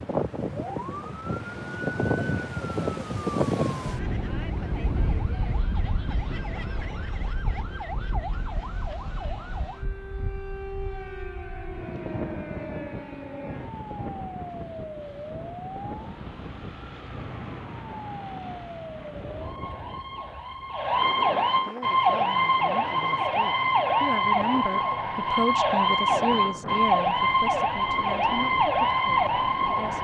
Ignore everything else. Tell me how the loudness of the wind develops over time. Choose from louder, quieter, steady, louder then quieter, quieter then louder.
quieter.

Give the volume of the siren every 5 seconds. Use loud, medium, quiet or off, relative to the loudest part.
quiet, quiet, quiet, quiet, loud, loud.